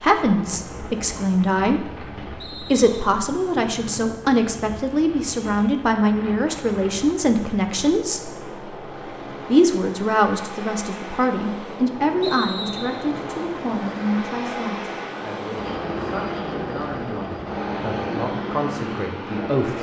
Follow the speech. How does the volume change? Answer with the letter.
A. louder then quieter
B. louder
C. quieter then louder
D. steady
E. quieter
E.